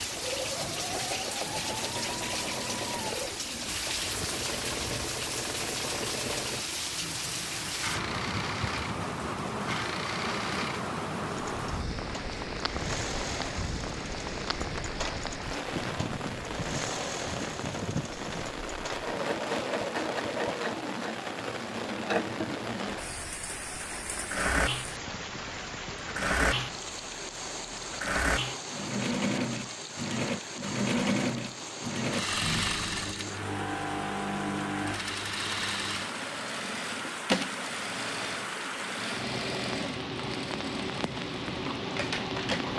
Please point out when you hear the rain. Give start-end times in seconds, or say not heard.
0.0-42.7.